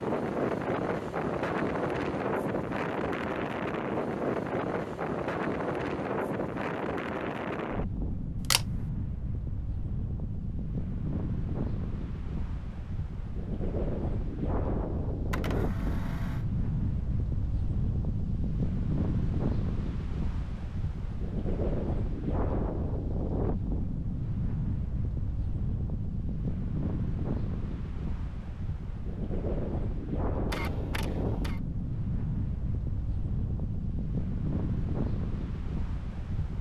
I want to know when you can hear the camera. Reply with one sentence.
The camera can be heard from 8.4 to 8.8 s, from 15.3 to 16.4 s and from 30.4 to 31.6 s.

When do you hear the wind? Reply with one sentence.
You can hear the wind from 0.0 to 36.5 s.